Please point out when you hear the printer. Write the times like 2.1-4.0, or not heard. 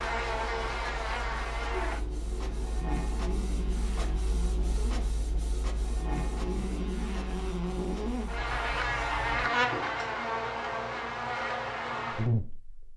0.0-9.2.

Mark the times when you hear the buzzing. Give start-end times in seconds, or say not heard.
0.0-12.9.